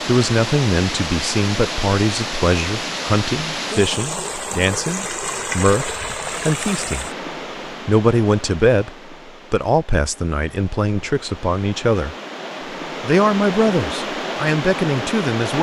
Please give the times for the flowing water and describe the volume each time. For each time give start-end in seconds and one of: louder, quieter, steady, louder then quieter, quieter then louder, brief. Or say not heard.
0.0-15.5 quieter then louder.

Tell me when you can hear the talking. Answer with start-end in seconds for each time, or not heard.
0.1-7.0, 7.8-12.2, 13.0-15.5.